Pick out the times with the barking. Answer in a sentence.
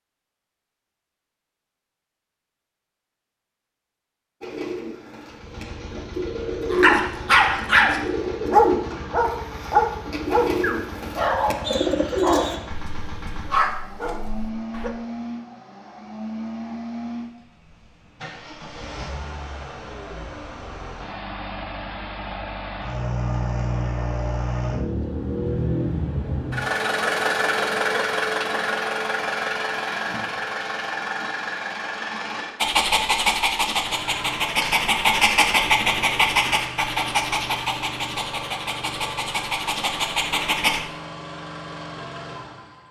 The barking can be heard from 6.7 to 14.9 s and from 32.6 to 40.8 s.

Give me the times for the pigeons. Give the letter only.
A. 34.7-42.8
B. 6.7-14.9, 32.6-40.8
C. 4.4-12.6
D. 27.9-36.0
C.